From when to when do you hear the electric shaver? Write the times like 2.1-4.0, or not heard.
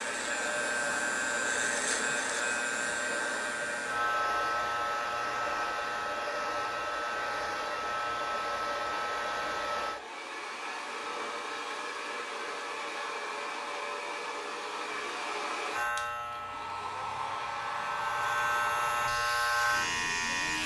0.0-10.0, 15.7-20.6.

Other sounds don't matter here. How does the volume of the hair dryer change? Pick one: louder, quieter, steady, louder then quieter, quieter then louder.
steady.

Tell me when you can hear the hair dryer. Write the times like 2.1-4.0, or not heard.
0.0-20.6.